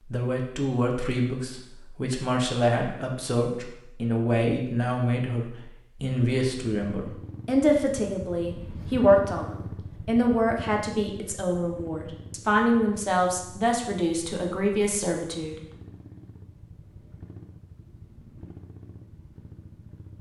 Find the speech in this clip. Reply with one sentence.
You can hear the speech from 0.1 to 15.6 s.